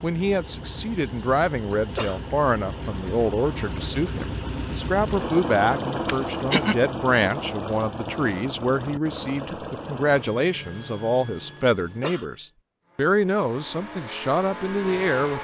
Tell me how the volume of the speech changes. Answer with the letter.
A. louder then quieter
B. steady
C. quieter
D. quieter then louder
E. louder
B.